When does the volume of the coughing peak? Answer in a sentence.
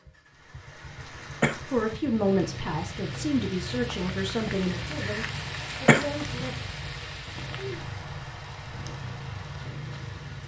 The loudest moment of the coughing is at 6 seconds.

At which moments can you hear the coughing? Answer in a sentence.
The coughing can be heard from 0.9 to 2.0 s and from 5.3 to 6.5 s.